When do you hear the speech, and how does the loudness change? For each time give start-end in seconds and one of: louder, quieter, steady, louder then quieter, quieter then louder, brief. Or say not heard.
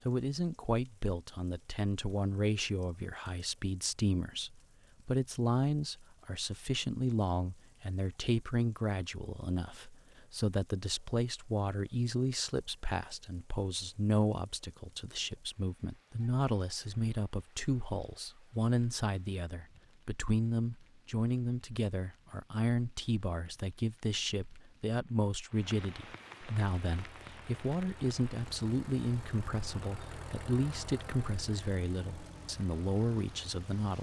0.1-33.9 steady.